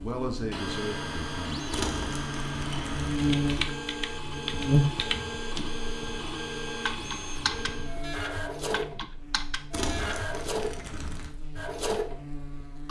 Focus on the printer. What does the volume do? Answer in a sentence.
The loudness of the printer stays about the same.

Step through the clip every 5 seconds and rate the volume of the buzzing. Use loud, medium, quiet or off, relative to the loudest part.
loud, quiet, quiet.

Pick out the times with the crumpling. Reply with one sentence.
The crumpling can be heard from 1.7 to 3.7 s and from 9.7 to 11.3 s.